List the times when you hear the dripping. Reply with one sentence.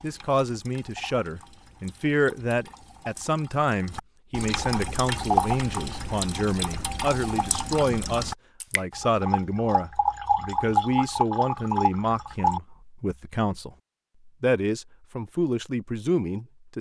The dripping can be heard from 0.0 to 12.6 s.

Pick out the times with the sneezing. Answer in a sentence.
The sneezing can't be heard in this clip.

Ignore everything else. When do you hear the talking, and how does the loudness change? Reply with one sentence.
You can hear the talking from 0.0 to 16.7 s, at a steady volume.